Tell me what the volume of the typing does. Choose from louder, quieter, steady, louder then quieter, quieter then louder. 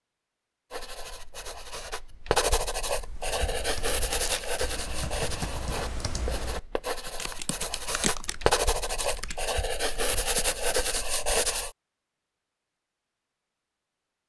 louder then quieter.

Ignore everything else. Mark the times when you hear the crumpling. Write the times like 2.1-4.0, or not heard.
4.0-4.6.